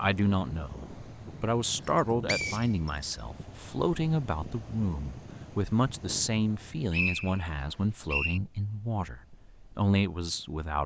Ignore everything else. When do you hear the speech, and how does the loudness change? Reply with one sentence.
You can hear the speech from 0.0 to 10.8 s, at a steady volume.